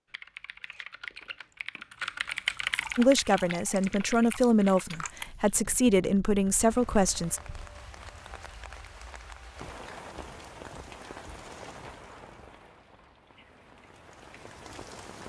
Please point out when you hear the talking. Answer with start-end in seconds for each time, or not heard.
3.0-7.4.